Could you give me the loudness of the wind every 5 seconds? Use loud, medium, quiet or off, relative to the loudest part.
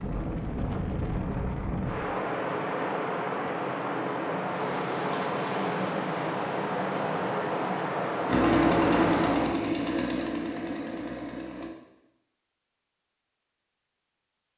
loud, loud, off.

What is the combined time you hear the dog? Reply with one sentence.
The dog can't be heard in this clip.